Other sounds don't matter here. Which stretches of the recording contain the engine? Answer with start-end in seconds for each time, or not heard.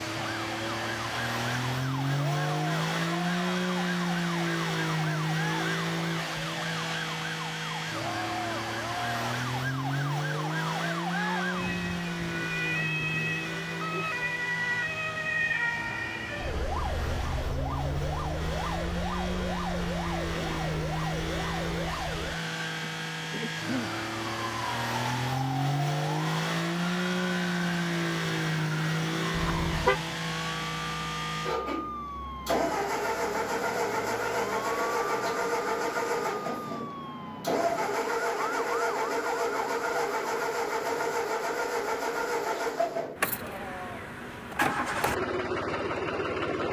0.0-46.6.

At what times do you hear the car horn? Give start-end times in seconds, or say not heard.
29.3-30.0.